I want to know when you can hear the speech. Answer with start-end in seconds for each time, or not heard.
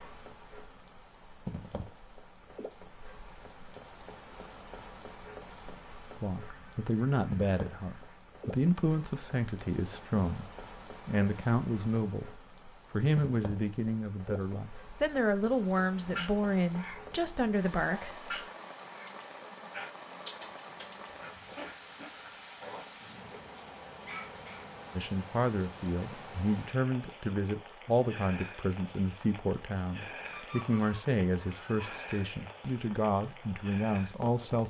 6.2-18.3, 24.9-34.6.